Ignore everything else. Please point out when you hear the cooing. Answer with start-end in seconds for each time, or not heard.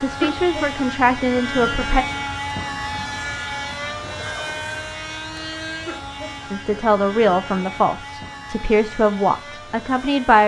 not heard.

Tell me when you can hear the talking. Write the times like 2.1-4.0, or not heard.
0.0-2.0, 6.5-10.4.